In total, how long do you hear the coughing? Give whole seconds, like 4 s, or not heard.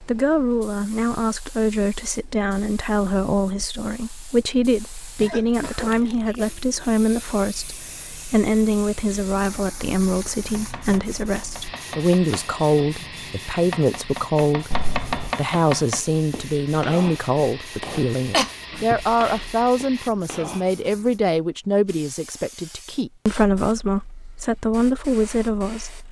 3 s.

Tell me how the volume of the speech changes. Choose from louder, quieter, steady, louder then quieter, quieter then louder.
steady.